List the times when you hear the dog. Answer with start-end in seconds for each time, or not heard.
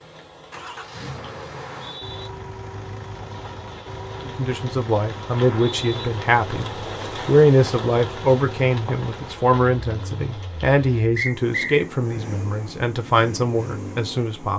not heard.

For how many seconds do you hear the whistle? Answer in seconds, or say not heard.
2 s.